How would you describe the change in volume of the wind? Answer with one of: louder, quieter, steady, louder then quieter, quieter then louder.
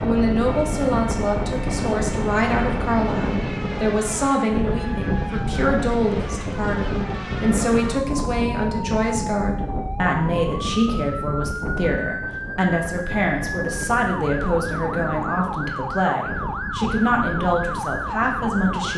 quieter.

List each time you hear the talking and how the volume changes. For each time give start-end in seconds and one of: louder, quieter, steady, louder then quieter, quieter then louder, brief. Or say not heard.
0.0-18.9 steady.